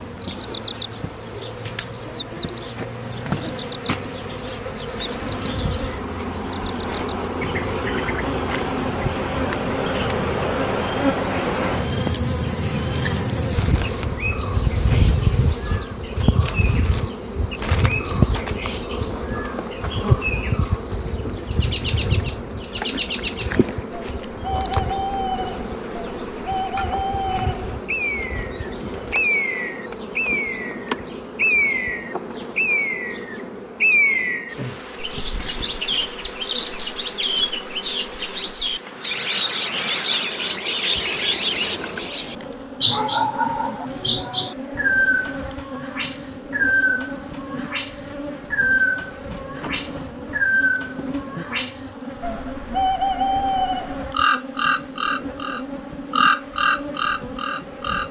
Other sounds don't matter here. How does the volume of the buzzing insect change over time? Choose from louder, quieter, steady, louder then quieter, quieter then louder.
quieter.